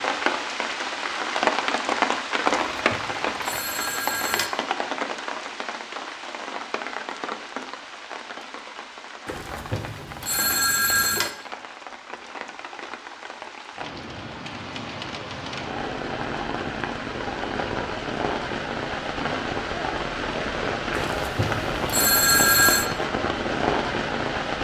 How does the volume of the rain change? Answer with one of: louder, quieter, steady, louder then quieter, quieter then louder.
quieter then louder.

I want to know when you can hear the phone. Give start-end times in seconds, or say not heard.
2.5-4.5, 9.2-11.3, 20.9-22.9.